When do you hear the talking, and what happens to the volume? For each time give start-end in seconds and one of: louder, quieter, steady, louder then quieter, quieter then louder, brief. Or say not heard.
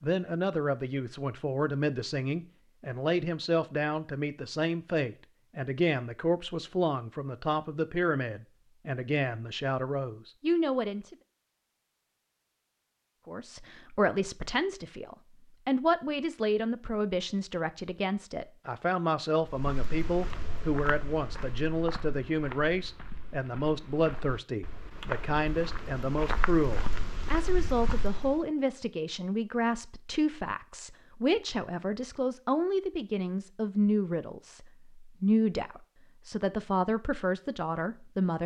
0.0-11.2 steady
13.2-38.4 steady.